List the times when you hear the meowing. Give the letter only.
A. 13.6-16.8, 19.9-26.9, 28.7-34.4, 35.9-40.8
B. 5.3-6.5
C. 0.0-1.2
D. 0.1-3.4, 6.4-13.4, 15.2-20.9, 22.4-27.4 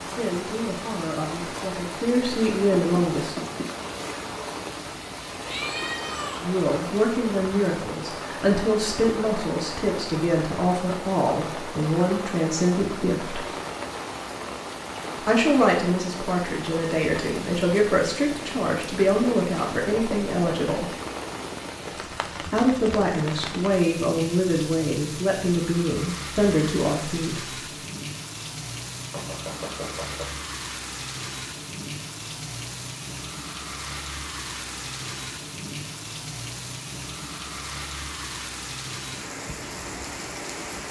B.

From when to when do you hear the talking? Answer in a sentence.
The talking can be heard from 0.1 to 3.4 s, from 6.4 to 13.4 s, from 15.2 to 20.9 s and from 22.4 to 27.4 s.